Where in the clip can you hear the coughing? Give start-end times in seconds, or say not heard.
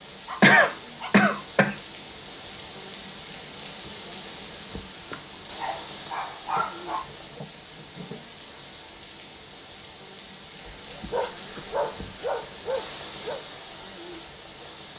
0.4-1.8, 6.5-8.2, 11.3-11.8.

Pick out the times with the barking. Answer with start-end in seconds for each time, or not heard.
0.2-1.3, 5.1-7.0, 10.7-13.4.